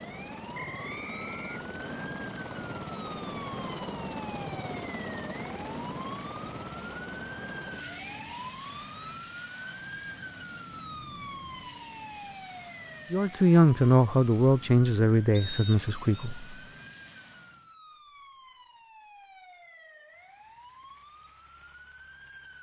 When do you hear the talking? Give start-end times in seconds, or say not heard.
13.1-16.6.